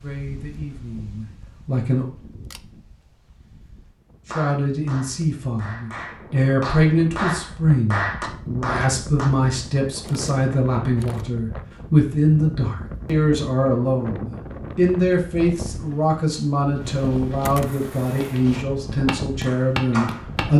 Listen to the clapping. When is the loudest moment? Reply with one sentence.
The loudest moment of the clapping is at 8 seconds.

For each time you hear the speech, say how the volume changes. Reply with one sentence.
You can hear the speech briefly from 0.0 to 2.0 s; and from 4.2 to 20.5 s, at a steady volume.